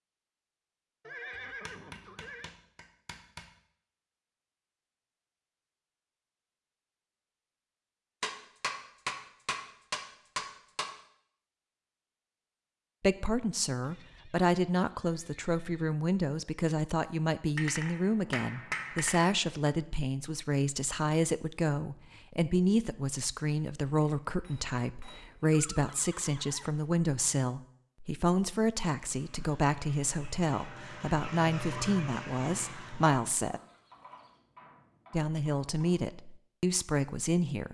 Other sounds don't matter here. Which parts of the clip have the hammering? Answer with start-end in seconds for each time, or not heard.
1.6-3.5, 8.2-10.9, 17.6-19.7, 24.0-25.4, 33.9-36.0.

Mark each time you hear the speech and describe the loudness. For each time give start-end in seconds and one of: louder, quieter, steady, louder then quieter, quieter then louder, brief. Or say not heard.
13.0-33.6 steady
35.1-37.6 brief.